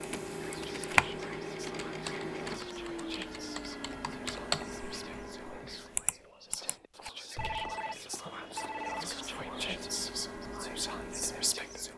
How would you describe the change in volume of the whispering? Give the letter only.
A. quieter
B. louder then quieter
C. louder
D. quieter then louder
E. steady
C.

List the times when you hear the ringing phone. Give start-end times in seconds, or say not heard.
7.3-9.1.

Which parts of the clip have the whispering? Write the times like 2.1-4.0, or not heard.
0.5-11.9.